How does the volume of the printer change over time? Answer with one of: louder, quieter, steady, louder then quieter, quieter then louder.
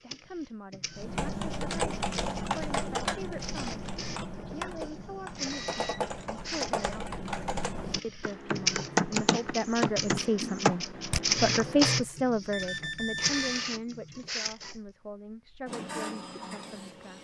louder then quieter.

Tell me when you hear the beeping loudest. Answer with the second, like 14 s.
13 s.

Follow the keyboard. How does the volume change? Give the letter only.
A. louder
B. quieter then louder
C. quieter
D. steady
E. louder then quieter
B.